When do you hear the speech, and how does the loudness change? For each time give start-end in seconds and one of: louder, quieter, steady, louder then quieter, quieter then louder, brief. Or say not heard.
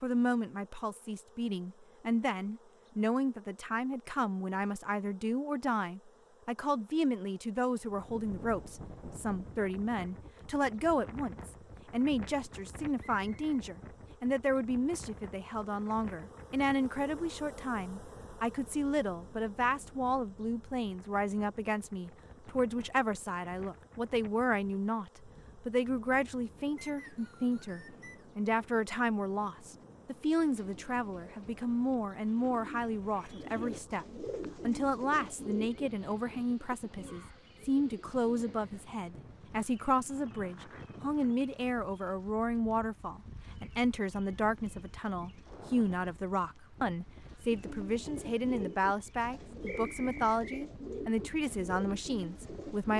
0.0-52.9 steady.